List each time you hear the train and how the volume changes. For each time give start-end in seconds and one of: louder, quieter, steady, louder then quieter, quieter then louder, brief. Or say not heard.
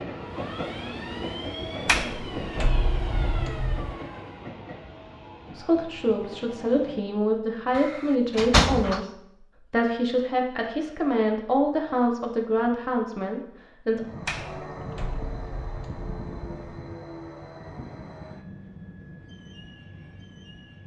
0.0-7.2 quieter
13.9-20.8 quieter.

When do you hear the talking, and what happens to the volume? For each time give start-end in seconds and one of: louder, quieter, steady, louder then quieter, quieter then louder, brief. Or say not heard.
5.5-14.1 steady.